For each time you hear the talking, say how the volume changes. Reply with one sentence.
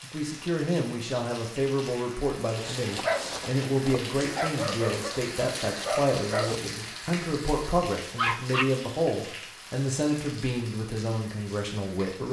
The talking can be heard from 0.0 to 12.2 s, at a steady volume.